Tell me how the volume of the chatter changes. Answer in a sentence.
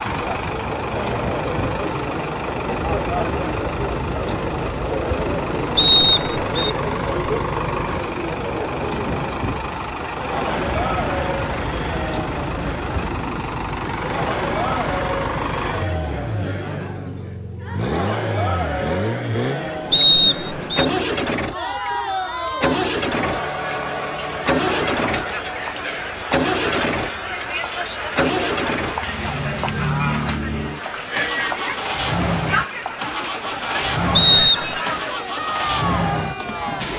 The loudness of the chatter stays about the same.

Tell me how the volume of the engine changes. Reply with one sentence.
The loudness of the engine stays about the same.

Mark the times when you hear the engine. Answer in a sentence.
The engine can be heard from 0.0 to 36.9 s.